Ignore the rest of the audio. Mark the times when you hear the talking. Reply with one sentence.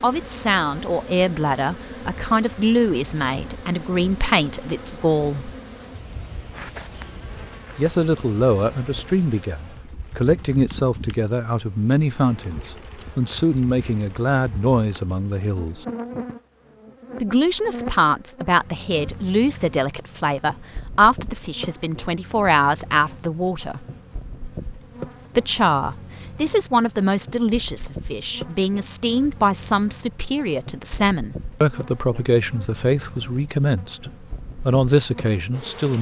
The talking can be heard from 0.0 to 5.5 s, from 7.8 to 15.8 s, from 17.2 to 23.9 s and from 25.4 to 35.9 s.